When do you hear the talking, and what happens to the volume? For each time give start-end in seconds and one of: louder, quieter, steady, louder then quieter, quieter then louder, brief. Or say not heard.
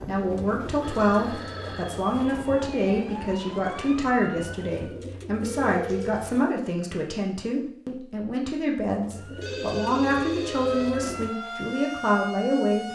0.0-12.9 steady.